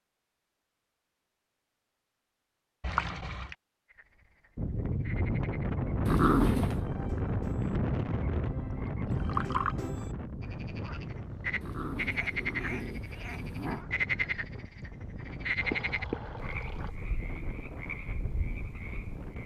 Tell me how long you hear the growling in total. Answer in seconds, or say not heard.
3 s.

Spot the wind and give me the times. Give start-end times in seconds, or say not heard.
4.5-19.4.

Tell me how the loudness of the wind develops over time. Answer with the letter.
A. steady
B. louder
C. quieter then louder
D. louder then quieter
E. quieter
E.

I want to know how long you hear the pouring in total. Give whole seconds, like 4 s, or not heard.
3 s.